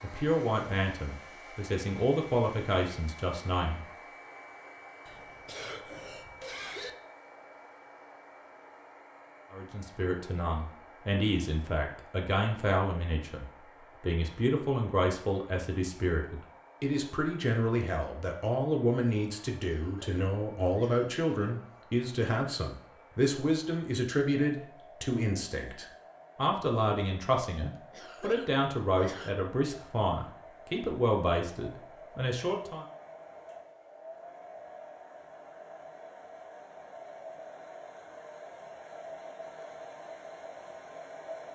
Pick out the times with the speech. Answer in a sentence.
The speech can be heard from 0.0 to 3.9 s and from 9.5 to 32.9 s.